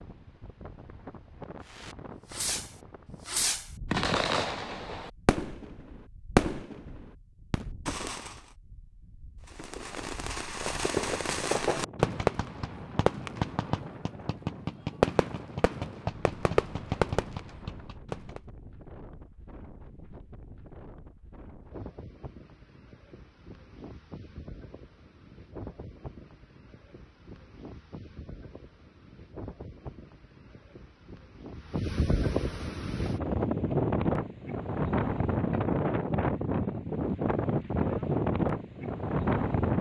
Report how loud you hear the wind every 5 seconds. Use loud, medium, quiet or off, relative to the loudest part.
quiet, quiet, quiet, quiet, quiet, quiet, loud, loud.